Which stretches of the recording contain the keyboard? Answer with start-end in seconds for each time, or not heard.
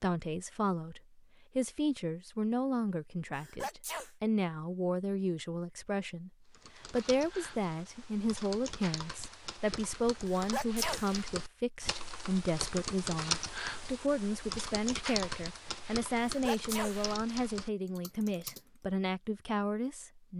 6.5-18.7.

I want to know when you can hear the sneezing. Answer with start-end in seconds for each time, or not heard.
3.4-4.1, 10.3-11.2, 16.2-17.1.